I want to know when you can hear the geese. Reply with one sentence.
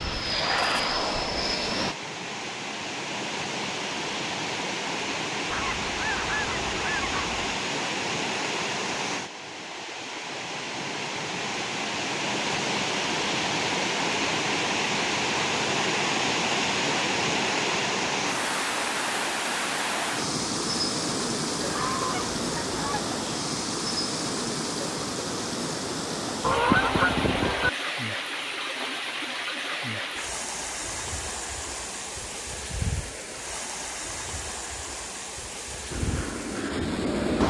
The geese can be heard from 5.5 to 7.4 s, from 21.6 to 23.1 s and from 26.4 to 27.7 s.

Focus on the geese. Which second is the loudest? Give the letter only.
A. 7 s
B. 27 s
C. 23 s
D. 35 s
B.